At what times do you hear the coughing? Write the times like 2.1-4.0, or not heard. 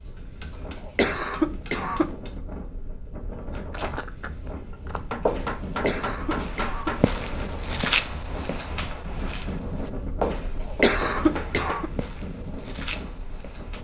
0.8-2.1, 5.7-7.0, 10.6-11.9.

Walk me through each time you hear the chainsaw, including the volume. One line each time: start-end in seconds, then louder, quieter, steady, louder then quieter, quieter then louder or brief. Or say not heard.
not heard.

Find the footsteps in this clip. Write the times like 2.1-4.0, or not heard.
3.7-13.7.